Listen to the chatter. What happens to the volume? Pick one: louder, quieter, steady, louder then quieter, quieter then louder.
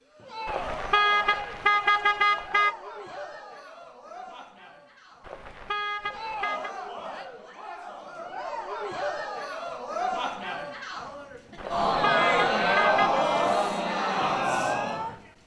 quieter then louder.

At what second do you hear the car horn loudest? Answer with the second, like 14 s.
2 s.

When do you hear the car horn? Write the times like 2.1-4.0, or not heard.
0.5-2.8, 5.2-6.7, 11.6-13.2.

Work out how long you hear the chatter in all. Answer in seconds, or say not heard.
15 s.